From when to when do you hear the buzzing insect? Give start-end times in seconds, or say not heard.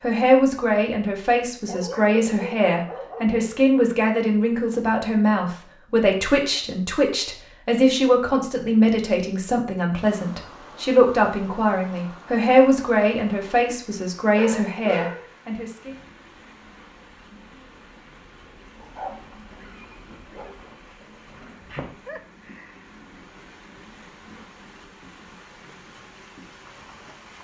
15.8-27.4.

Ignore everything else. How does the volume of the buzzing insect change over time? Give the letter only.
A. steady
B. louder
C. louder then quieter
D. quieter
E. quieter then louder
C.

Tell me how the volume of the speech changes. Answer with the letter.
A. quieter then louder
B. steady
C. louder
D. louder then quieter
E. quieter
B.